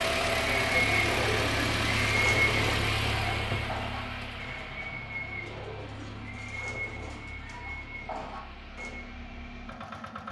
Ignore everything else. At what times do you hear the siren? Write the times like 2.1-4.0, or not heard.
not heard.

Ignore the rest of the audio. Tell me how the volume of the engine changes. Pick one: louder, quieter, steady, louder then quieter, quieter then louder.
quieter.